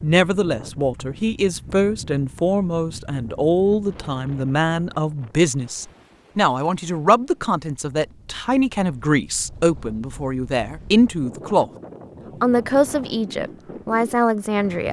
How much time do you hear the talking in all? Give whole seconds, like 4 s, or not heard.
14 s.